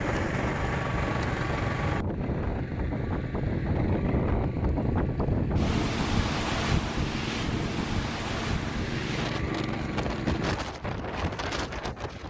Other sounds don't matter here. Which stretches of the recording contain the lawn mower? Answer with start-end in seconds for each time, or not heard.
0.0-10.6.